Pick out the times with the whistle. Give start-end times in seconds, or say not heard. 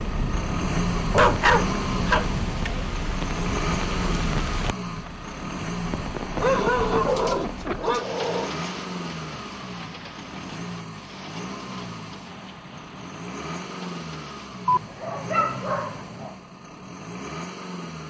not heard.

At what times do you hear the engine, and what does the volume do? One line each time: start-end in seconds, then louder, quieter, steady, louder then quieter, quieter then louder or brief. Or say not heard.
0.0-18.0 quieter.